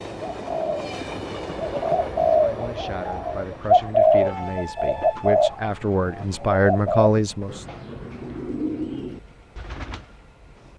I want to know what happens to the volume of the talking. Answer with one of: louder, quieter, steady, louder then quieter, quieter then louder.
louder.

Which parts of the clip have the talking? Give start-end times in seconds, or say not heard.
2.3-7.7.